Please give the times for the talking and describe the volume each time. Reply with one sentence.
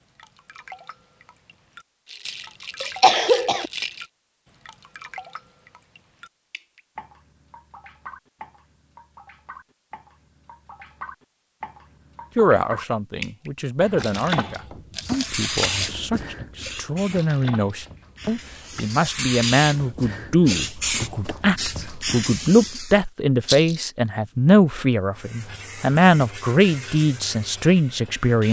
The talking can be heard from 12.3 to 28.4 s, getting louder.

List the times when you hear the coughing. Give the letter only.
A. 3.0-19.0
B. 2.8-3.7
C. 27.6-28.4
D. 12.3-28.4
B.